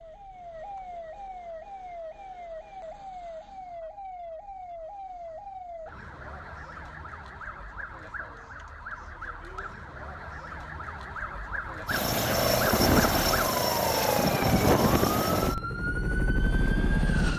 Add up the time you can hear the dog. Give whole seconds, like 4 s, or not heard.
not heard.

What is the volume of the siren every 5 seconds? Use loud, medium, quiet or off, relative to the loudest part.
medium, medium, loud, loud.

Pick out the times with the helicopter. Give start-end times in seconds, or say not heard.
11.8-17.3.